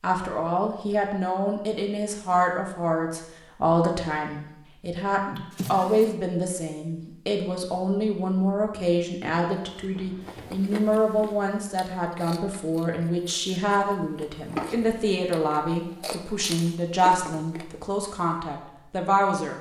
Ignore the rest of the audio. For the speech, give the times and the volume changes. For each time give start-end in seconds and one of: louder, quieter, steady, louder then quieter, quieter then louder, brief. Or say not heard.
0.0-19.5 steady.